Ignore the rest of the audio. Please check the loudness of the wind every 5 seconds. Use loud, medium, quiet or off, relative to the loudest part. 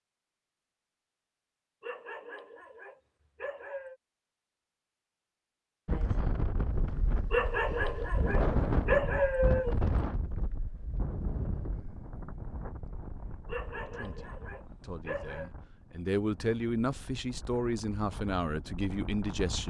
off, loud, medium, quiet.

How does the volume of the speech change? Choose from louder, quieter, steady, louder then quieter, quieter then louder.
louder.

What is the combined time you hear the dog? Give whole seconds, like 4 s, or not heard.
7 s.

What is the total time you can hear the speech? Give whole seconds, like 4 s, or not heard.
6 s.